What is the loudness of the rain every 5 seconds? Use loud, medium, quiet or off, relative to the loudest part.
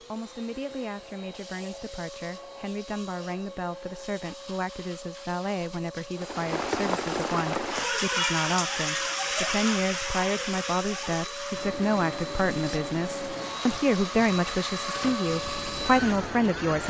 off, loud, medium, medium.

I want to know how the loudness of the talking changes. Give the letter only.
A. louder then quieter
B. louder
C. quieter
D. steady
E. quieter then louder
B.